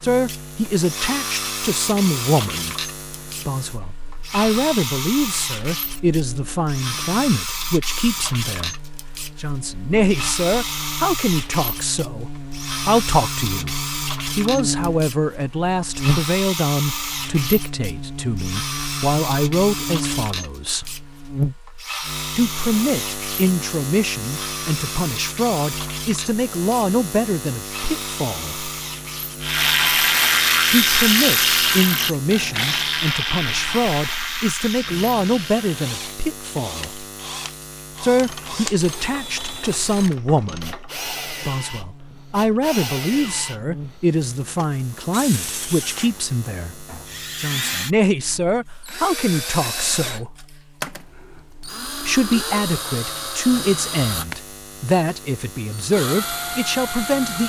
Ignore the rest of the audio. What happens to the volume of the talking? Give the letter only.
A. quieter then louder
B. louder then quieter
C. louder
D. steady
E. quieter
D.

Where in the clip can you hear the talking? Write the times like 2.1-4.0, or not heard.
0.0-20.9, 22.4-28.7, 30.7-37.0, 38.0-50.4, 52.0-57.4.